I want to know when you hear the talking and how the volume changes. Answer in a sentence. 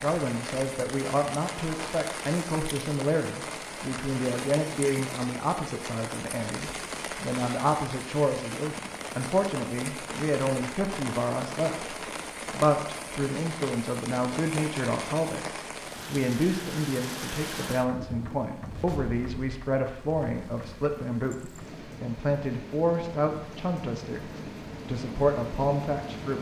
The talking can be heard from 0.0 to 26.3 s, at a steady volume.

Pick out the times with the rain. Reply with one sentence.
You can hear the rain from 0.0 to 26.3 s.